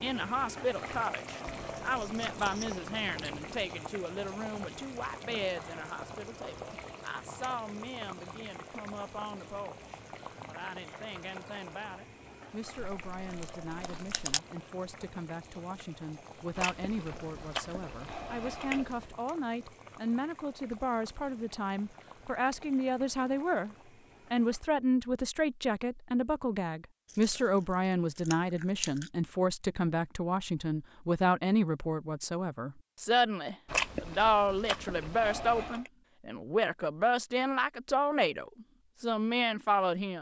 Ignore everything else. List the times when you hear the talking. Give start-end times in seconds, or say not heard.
0.0-40.1.